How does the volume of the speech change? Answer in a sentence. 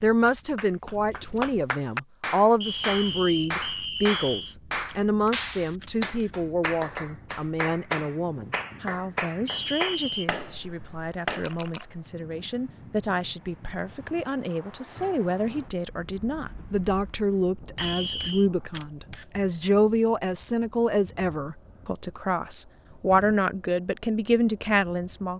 The loudness of the speech goes down, then up.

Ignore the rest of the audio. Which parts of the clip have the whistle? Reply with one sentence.
The whistle can be heard from 2.6 to 4.5 s, from 9.4 to 10.2 s and from 17.8 to 18.4 s.